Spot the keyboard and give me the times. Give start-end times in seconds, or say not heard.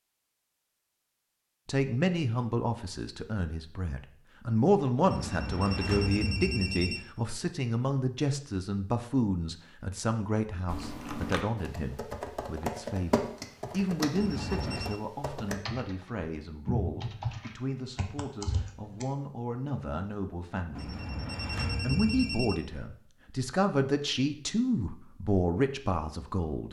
10.7-19.1.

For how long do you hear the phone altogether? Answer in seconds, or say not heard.
5 s.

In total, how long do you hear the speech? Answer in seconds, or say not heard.
24 s.